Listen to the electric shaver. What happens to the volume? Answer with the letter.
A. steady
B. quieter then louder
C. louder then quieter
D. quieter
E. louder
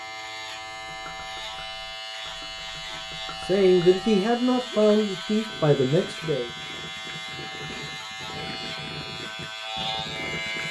A.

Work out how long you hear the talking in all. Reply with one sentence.
The talking can be heard for 3 seconds in total.